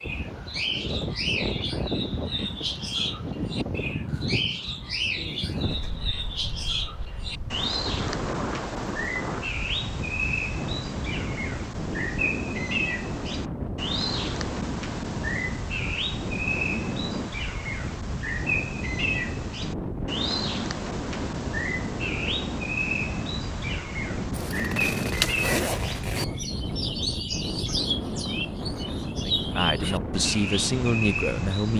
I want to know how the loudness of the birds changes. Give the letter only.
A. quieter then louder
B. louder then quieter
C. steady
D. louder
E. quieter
C.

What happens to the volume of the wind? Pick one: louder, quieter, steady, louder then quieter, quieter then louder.
steady.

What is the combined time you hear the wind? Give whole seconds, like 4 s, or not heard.
32 s.